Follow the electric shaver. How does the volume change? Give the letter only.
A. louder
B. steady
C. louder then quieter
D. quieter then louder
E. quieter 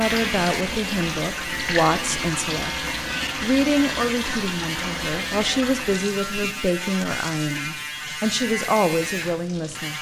B.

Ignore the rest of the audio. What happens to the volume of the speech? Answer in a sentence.
The volume of the speech stays about the same.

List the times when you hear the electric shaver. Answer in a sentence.
You can hear the electric shaver from 0.0 to 9.9 s.